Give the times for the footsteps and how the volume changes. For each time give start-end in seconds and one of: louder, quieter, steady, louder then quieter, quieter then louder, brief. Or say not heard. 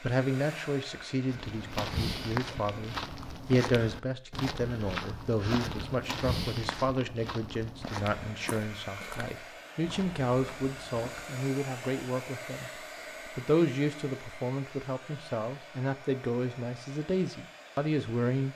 1.2-11.4 quieter.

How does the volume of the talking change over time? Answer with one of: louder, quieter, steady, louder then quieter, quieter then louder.
steady.